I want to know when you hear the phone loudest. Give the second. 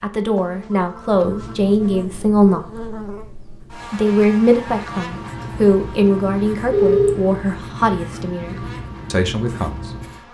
7 s.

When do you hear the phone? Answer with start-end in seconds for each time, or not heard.
0.3-1.7, 6.7-7.3.